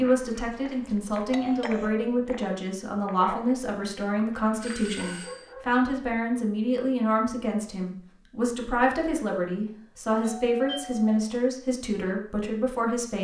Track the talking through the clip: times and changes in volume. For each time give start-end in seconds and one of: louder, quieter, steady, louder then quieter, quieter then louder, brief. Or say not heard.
0.0-13.1 steady.